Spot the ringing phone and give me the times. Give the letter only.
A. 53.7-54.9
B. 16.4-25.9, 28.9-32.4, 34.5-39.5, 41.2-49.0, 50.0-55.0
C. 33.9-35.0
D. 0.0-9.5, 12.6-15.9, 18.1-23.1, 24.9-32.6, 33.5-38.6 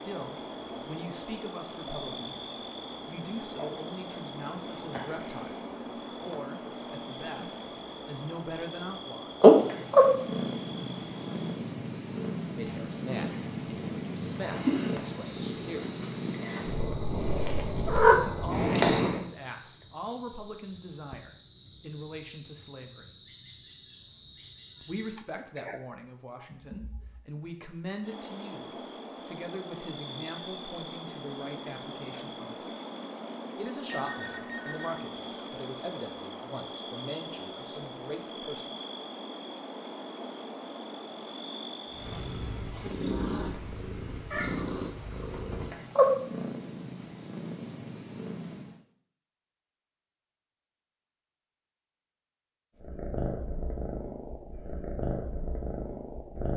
C.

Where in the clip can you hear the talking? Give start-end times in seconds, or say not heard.
0.0-9.5, 12.6-15.9, 18.1-23.1, 24.9-32.6, 33.5-38.6.